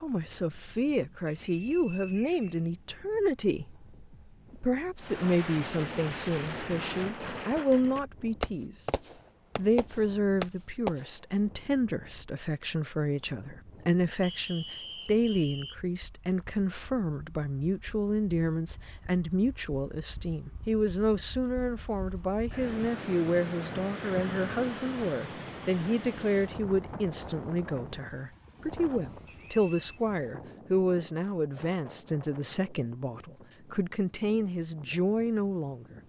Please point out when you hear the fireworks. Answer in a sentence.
You can hear the fireworks from 5.0 to 11.1 s.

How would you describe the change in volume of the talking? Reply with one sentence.
The loudness of the talking stays about the same.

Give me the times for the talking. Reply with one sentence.
You can hear the talking from 0.0 to 3.8 s, from 4.5 to 8.8 s and from 9.6 to 36.0 s.